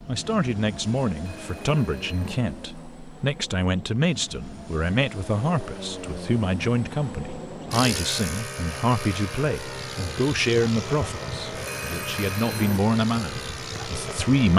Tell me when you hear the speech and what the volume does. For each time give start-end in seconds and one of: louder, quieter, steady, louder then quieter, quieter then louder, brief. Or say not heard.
0.1-14.5 steady.